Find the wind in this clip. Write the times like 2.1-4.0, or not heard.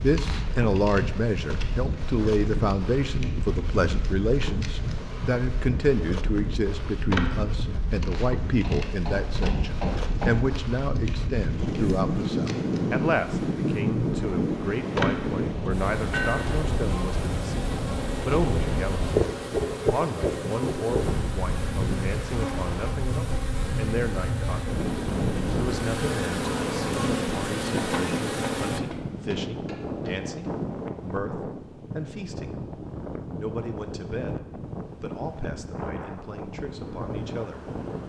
0.0-38.0.